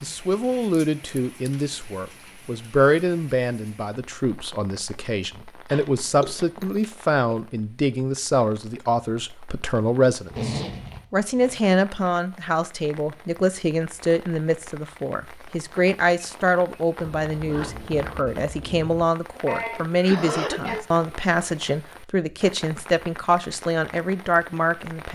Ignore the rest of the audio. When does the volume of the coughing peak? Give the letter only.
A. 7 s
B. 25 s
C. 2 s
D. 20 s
D.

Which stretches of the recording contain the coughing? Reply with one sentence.
The coughing can be heard from 6.2 to 7.3 s and from 19.4 to 20.9 s.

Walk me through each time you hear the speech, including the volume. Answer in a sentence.
You can hear the speech from 0.0 to 25.1 s, at a steady volume.